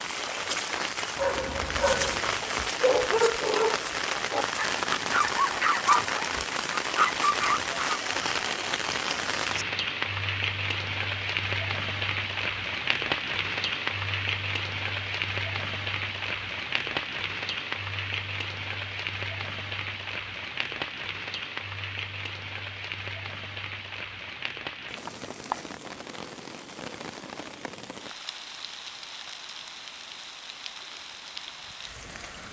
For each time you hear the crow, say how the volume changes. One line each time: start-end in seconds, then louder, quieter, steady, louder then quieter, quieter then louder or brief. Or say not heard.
not heard.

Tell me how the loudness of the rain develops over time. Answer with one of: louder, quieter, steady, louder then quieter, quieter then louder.
quieter.